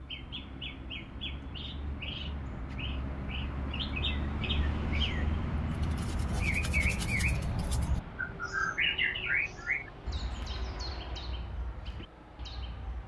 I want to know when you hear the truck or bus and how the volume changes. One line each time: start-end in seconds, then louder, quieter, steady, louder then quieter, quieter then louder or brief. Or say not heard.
0.0-13.0 louder then quieter.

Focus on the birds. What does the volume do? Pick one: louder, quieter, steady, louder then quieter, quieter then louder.
louder then quieter.